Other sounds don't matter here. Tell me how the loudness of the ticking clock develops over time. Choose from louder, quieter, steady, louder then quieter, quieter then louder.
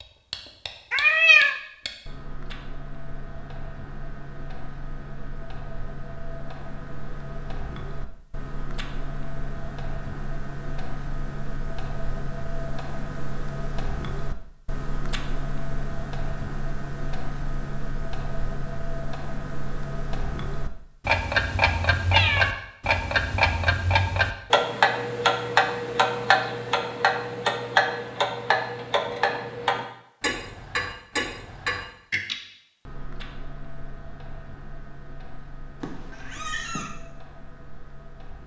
louder then quieter.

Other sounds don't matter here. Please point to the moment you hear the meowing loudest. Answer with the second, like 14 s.
1 s.